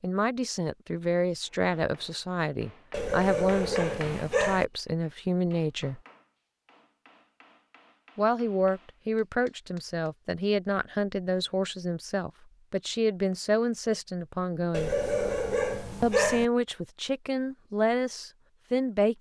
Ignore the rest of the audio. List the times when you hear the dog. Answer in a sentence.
You can hear the dog from 2.9 to 4.7 s and from 14.7 to 16.4 s.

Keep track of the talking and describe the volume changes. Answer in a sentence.
The loudness of the talking stays about the same.